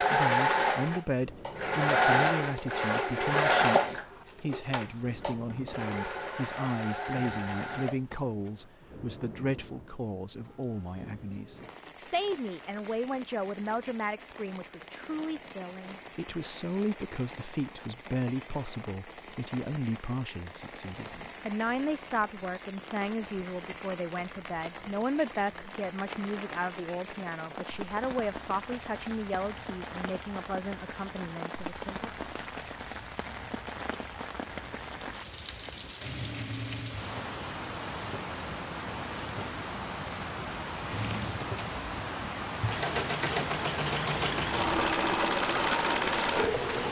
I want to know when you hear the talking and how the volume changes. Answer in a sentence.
The talking can be heard from 0.0 to 32.1 s, at a steady volume.